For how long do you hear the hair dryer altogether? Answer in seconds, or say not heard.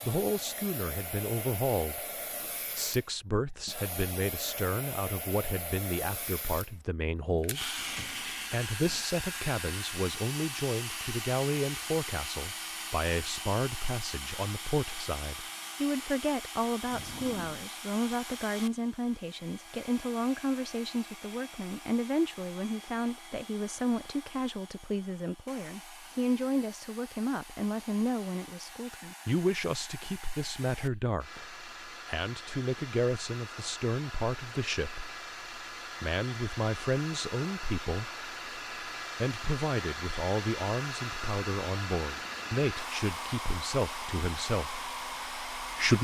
46 s.